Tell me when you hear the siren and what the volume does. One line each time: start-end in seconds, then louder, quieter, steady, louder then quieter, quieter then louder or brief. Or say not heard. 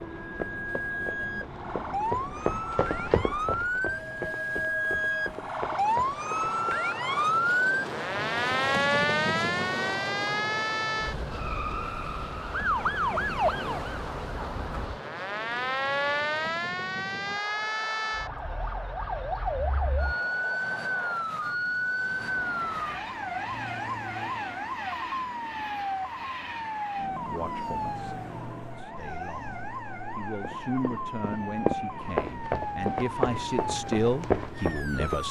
0.0-35.2 quieter.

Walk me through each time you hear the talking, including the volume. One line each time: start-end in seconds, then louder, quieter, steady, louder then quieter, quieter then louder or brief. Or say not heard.
27.2-35.2 louder.